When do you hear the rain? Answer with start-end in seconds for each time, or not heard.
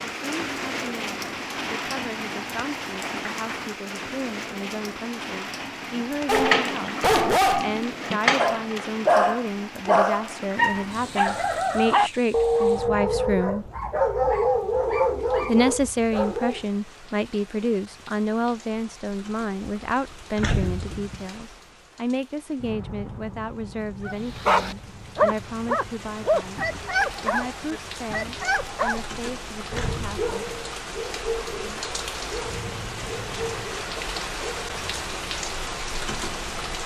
0.0-36.8.